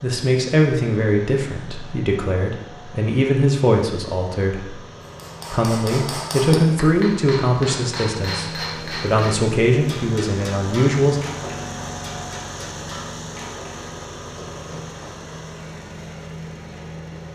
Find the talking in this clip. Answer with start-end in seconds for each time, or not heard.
0.0-4.8, 5.5-11.2.